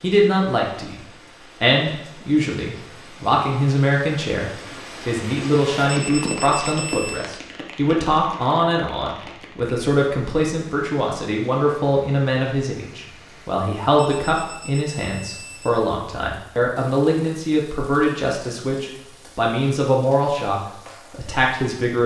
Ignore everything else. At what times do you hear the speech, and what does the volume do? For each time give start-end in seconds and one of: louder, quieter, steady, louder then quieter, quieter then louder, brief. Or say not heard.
0.0-22.0 steady.